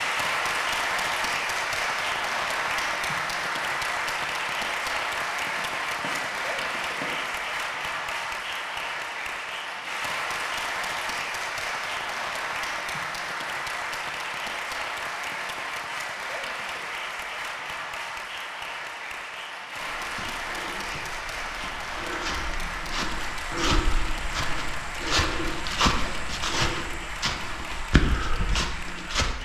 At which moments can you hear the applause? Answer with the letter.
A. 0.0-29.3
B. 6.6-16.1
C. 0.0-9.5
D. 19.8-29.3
A.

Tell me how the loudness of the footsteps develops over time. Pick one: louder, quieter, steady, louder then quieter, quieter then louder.
louder.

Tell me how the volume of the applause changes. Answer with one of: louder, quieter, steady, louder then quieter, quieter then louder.
quieter.